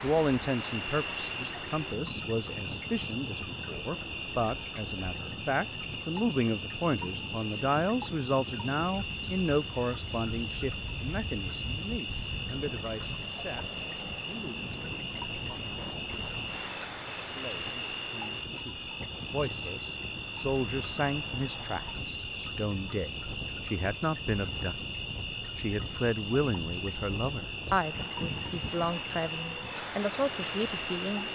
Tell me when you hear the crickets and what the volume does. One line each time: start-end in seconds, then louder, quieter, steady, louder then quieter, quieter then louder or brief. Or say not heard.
0.0-31.3 steady.